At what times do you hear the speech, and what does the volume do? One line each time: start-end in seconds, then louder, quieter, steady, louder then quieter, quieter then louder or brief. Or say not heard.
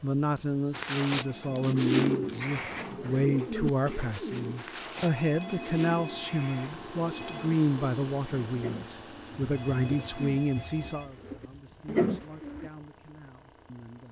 0.0-14.0 quieter.